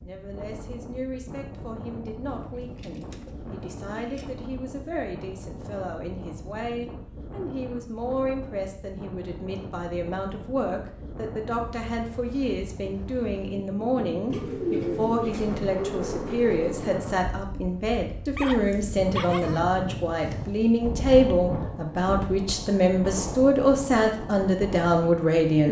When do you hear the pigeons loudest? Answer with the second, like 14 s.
15 s.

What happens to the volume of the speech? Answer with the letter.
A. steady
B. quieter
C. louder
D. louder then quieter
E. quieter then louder
C.